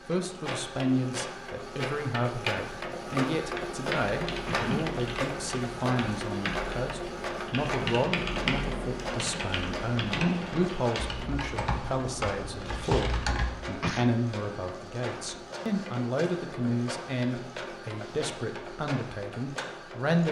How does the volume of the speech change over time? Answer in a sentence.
The volume of the speech stays about the same.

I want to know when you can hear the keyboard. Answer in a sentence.
You can hear the keyboard from 2.9 to 13.6 s.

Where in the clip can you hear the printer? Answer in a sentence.
You can hear the printer from 0.0 to 20.2 s.